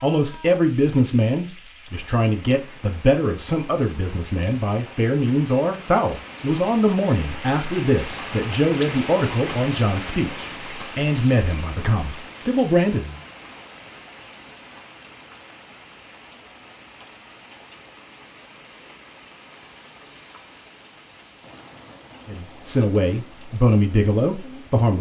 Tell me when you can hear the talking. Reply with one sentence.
The talking can be heard from 0.0 to 13.2 s and from 22.2 to 24.9 s.